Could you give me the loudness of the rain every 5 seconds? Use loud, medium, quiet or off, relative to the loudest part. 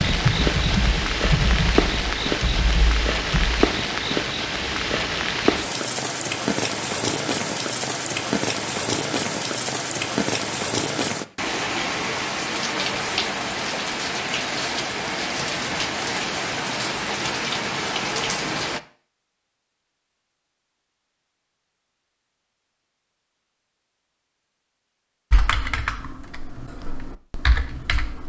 loud, loud, loud, loud, off, off.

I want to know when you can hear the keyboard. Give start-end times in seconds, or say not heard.
0.0-3.5, 25.3-28.2.